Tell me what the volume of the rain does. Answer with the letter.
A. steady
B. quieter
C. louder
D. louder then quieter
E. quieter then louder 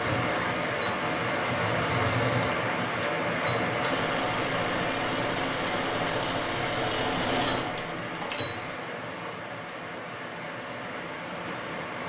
B.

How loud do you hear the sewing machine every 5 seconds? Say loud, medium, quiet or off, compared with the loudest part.
loud, loud, off.